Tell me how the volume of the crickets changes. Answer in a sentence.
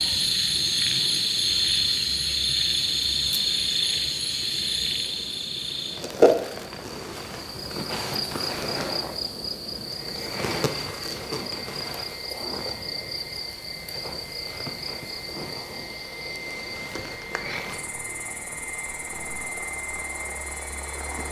The volume of the crickets goes down.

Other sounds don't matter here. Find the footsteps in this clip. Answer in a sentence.
You can't hear the footsteps here.